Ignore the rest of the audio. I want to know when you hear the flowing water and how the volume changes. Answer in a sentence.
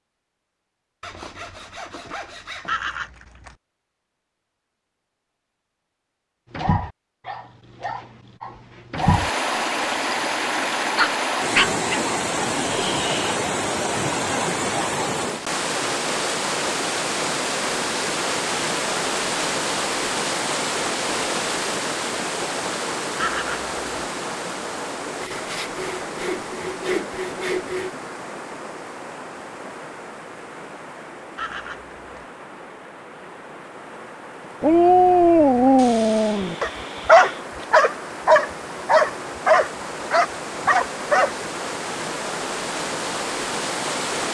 The flowing water can be heard from 8.9 to 44.2 s, getting quieter then louder.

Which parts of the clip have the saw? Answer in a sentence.
The saw can be heard from 1.0 to 2.9 s, from 25.1 to 27.9 s and from 35.8 to 37.5 s.